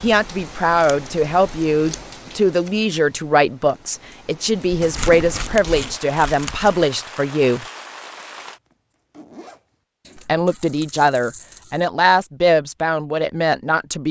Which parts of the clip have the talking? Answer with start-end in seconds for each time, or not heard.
0.0-7.7, 10.2-14.0.